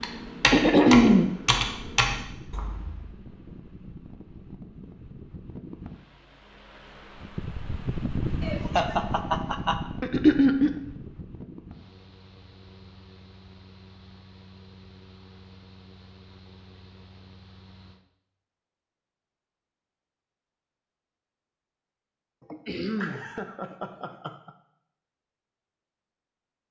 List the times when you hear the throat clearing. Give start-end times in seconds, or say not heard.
0.4-1.4, 10.0-10.7, 22.6-23.2.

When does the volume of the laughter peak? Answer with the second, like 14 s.
9 s.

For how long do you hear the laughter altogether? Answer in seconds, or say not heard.
4 s.